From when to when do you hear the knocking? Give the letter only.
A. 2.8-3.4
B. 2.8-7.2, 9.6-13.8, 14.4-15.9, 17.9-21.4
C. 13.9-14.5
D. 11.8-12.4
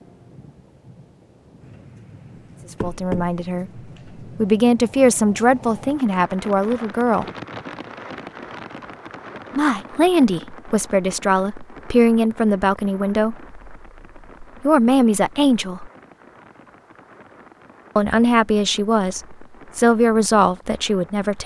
A.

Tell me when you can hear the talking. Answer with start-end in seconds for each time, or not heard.
2.8-7.2, 9.6-13.8, 14.4-15.9, 17.9-21.4.